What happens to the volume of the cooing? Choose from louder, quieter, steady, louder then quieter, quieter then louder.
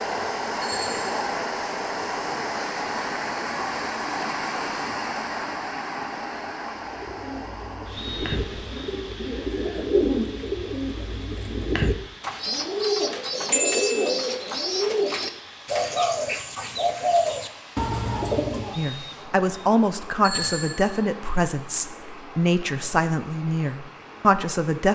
louder.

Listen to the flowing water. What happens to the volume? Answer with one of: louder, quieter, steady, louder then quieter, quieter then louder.
quieter.